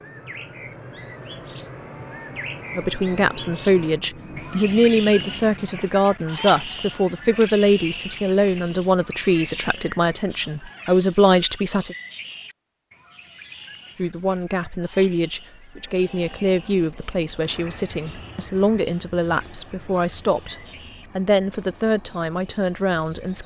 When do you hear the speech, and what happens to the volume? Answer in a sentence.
You can hear the speech from 2.8 to 11.9 s, at a steady volume; and from 13.9 to 23.4 s, at a steady volume.